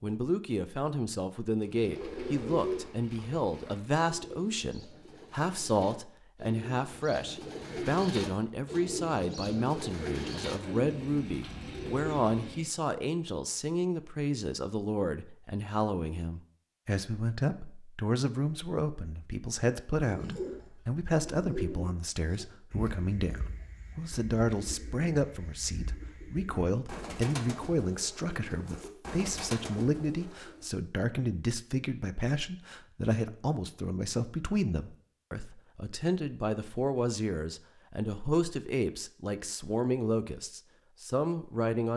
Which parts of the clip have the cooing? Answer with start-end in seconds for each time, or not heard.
1.8-12.7, 19.9-30.7.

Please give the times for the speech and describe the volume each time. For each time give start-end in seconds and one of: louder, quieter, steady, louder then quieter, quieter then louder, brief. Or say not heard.
0.0-41.9 steady.